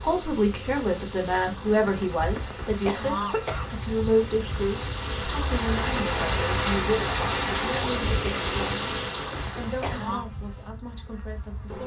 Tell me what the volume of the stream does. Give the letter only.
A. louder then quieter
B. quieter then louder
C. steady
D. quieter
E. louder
E.